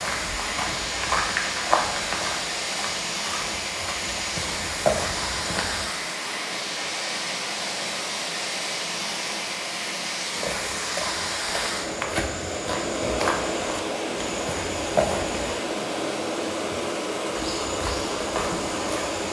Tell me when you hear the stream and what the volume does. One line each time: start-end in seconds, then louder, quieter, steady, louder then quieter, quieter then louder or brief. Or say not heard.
0.0-19.2 steady.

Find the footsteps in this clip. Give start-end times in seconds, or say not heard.
0.0-5.8, 10.3-15.6, 17.4-19.2.